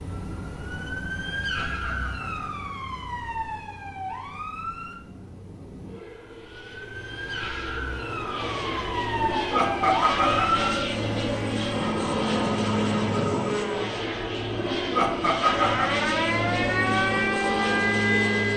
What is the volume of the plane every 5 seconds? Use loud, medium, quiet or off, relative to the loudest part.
quiet, medium, loud, loud.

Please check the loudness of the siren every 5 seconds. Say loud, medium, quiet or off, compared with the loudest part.
medium, medium, loud, loud.